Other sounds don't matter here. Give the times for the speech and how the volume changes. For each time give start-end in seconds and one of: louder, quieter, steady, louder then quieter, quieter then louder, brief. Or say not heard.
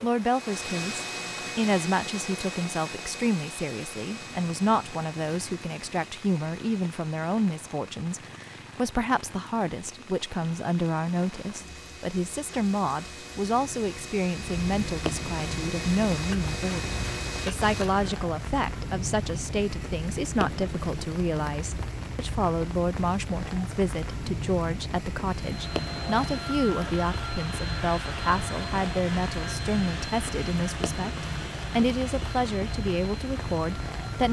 0.0-34.2 steady.